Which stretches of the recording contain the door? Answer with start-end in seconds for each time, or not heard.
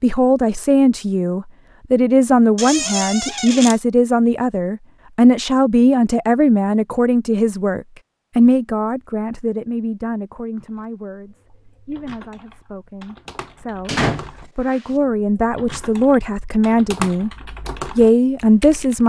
2.5-3.8, 13.8-14.8.